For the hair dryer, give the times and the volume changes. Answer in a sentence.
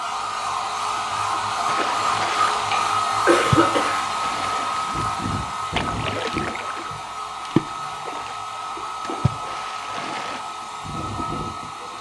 You can hear the hair dryer from 0.0 to 11.9 s, getting quieter.